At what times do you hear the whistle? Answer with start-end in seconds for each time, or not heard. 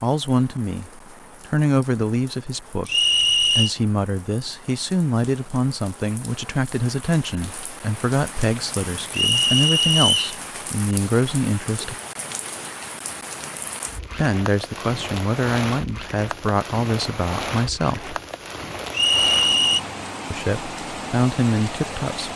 2.9-3.7, 9.1-10.3, 18.9-19.8.